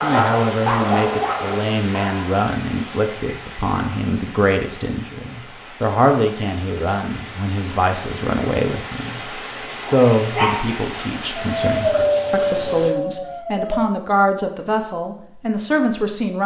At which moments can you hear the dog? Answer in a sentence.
The dog can be heard from 0.0 to 2.4 s and from 9.8 to 13.8 s.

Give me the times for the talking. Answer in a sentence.
You can hear the talking from 0.0 to 16.4 s.